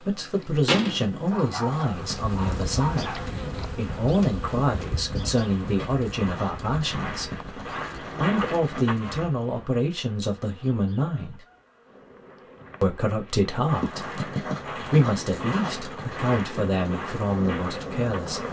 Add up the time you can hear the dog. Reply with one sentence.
You can hear the dog for 2 seconds altogether.